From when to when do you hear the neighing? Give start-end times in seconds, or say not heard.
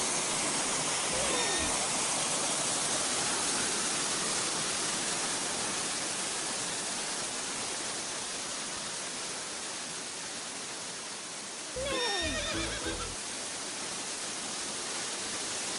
1.1-1.8, 11.8-13.2.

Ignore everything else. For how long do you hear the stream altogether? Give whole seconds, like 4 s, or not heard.
16 s.